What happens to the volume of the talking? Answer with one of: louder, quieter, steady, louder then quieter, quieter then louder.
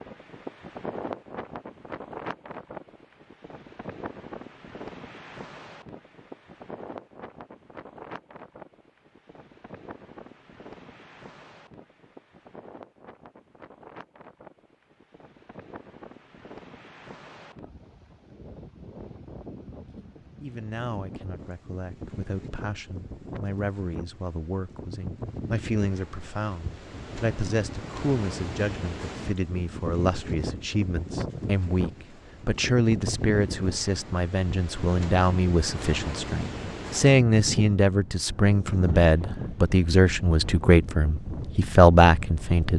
louder.